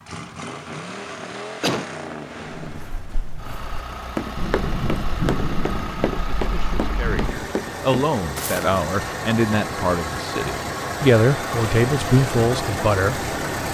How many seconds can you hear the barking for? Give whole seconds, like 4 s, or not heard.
not heard.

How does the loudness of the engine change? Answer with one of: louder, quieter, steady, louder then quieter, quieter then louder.
louder.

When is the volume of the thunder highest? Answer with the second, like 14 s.
5 s.